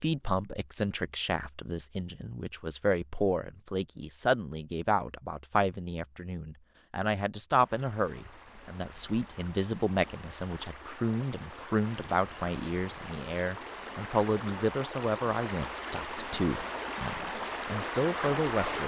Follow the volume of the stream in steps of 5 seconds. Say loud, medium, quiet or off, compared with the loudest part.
off, quiet, medium, loud.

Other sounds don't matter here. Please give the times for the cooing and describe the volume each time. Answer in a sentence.
You can't hear the cooing here.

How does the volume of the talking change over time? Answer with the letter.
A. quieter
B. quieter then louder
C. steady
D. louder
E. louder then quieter
C.